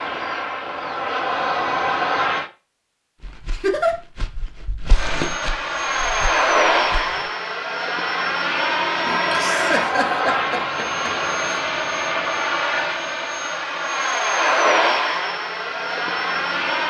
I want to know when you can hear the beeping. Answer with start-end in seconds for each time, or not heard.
not heard.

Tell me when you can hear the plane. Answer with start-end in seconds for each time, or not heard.
0.0-2.5, 5.0-16.8.